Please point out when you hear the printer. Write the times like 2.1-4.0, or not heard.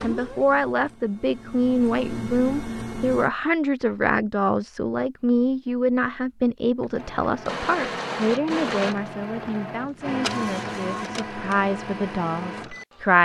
0.0-3.3, 6.8-13.2.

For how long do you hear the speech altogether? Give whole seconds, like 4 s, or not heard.
13 s.